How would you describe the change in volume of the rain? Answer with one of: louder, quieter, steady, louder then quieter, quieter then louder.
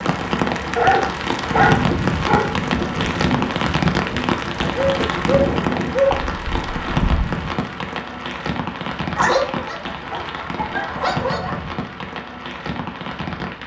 quieter.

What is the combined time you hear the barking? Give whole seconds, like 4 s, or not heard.
6 s.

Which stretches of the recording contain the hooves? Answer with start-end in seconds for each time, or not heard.
1.5-7.2.